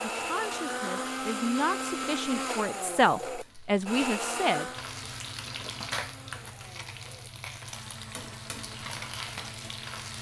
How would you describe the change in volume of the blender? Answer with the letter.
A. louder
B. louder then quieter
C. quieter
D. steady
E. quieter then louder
C.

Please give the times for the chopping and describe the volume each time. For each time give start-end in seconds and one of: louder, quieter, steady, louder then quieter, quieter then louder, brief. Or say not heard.
not heard.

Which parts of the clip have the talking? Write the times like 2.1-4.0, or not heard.
0.1-4.7.